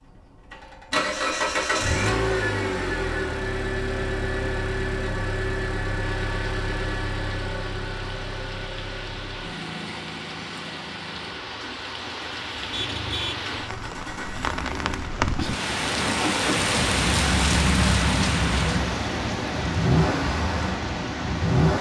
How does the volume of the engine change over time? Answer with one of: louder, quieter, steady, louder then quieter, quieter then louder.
quieter then louder.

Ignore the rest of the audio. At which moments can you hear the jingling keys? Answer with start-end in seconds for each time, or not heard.
not heard.